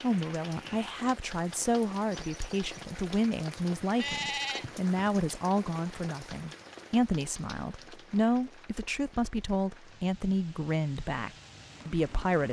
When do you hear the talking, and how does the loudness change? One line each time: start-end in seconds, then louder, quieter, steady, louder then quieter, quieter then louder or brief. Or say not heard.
0.0-12.4 steady.